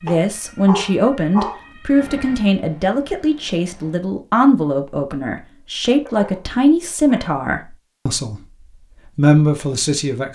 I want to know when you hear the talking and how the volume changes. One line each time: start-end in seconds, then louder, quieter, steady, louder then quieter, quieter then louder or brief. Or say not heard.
0.0-8.4 steady
9.1-10.2 brief.